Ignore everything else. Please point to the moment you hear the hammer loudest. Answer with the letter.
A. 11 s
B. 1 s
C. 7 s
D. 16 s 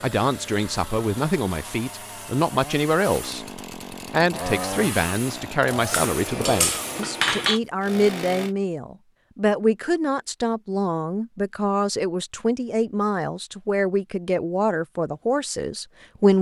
C.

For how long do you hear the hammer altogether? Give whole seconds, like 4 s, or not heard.
2 s.